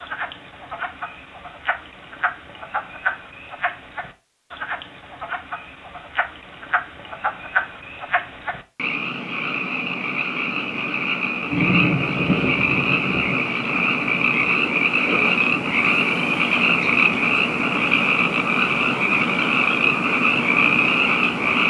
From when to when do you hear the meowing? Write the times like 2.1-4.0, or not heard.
not heard.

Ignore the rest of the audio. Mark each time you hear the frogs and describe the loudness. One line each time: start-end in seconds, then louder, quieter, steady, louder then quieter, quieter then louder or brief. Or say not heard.
0.0-21.6 louder.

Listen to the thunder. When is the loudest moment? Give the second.
12 s.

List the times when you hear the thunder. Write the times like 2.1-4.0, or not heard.
11.5-13.4.